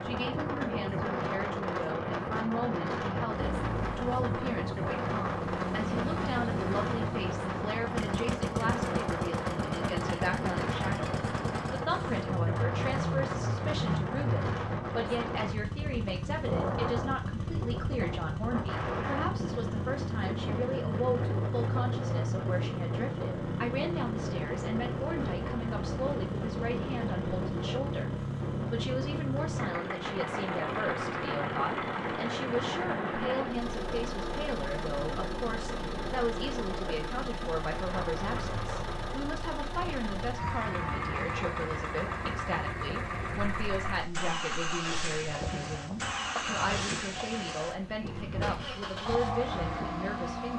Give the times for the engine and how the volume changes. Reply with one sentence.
The engine can be heard from 3.3 to 50.5 s, at a steady volume.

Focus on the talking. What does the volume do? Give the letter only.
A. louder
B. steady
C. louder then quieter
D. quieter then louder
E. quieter
B.